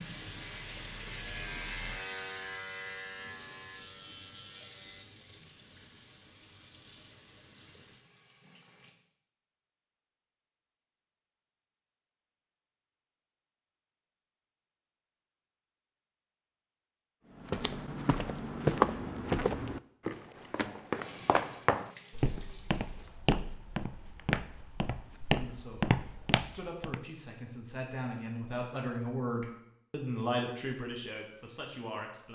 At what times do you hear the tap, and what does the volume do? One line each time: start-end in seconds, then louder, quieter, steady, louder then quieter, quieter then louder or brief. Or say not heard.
0.0-8.9 quieter
20.9-23.1 brief.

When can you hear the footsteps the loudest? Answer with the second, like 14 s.
19 s.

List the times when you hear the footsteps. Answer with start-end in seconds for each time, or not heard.
17.4-27.0.